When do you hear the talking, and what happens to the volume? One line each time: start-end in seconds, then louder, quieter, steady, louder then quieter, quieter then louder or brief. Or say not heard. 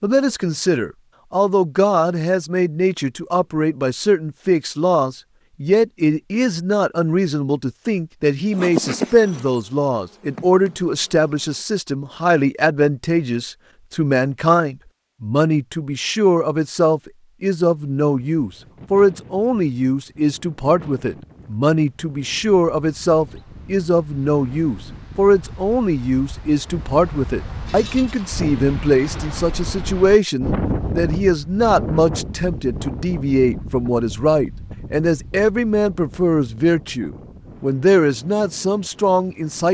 0.0-39.6 steady.